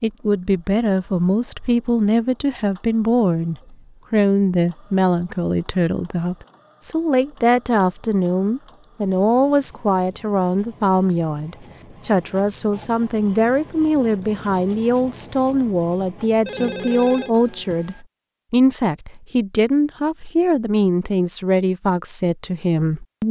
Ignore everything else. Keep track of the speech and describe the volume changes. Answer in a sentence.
The loudness of the speech stays about the same.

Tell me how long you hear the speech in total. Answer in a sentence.
You can hear the speech for 23 seconds altogether.